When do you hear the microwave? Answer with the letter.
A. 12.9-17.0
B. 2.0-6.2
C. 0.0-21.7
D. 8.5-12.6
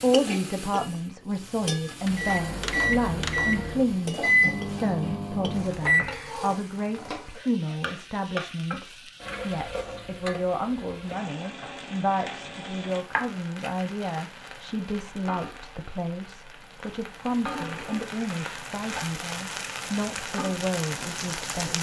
B.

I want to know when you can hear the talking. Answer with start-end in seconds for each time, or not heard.
0.0-21.7.